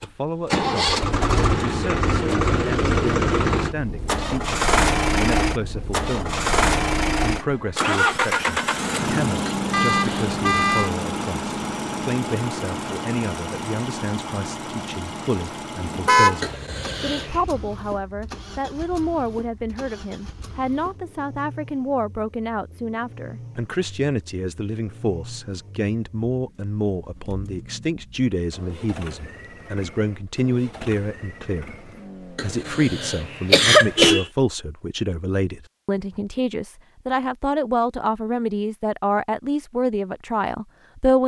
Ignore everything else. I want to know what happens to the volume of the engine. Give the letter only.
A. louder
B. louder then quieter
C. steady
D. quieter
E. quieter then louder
D.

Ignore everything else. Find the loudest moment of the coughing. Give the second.
34 s.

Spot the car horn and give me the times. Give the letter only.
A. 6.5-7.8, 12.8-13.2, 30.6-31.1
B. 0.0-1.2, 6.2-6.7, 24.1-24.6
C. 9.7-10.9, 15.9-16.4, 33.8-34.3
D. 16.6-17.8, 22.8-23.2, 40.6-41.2
C.